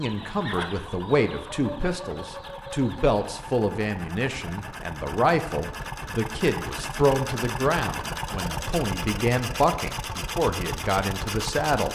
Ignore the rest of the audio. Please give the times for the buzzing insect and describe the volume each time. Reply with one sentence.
You can't hear the buzzing insect here.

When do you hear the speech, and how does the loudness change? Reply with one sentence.
You can hear the speech from 0.0 to 11.8 s, at a steady volume.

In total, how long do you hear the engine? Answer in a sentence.
You can hear the engine for 12 seconds altogether.